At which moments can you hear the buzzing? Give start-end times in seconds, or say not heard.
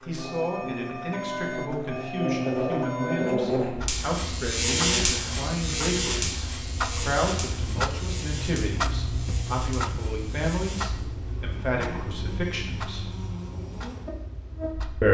0.0-15.0.